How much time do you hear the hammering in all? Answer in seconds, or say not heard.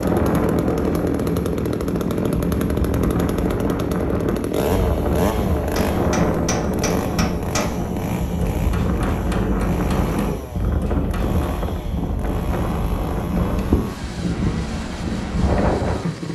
6 s.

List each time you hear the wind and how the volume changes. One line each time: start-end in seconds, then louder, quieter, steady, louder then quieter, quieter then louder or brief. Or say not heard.
0.0-16.3 steady.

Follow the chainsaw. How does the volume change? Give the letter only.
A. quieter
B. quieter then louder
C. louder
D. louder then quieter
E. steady
A.